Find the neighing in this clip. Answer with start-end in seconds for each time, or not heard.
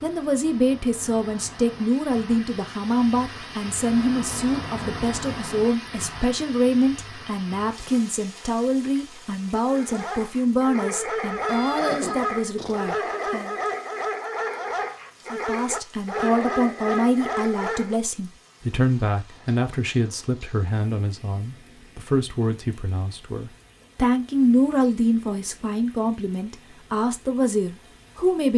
11.3-12.9.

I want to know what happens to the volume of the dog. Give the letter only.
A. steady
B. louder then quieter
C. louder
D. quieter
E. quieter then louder
A.